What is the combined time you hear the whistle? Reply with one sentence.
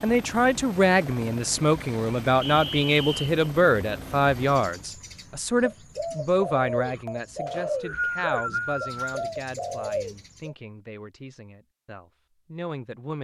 You can hear the whistle for 3 seconds altogether.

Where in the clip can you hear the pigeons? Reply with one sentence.
You can hear the pigeons from 4.4 to 10.6 s.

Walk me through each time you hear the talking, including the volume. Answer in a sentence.
The talking can be heard from 0.0 to 13.2 s, getting quieter.